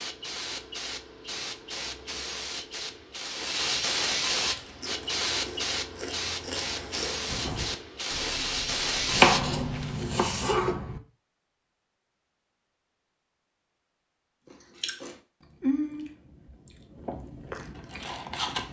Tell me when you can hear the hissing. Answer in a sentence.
You can hear the hissing from 0.0 to 10.6 s.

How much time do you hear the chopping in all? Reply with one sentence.
The chopping can be heard for 2 seconds in total.